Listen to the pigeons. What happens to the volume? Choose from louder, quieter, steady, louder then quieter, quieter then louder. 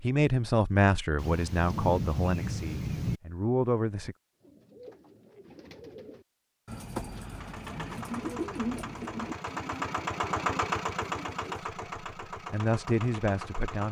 louder then quieter.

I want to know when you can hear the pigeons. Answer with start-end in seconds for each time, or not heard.
4.4-11.6.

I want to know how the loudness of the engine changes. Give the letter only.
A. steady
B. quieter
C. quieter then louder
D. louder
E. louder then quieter
E.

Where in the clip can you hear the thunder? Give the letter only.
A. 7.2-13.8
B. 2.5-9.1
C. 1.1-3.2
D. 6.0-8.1
C.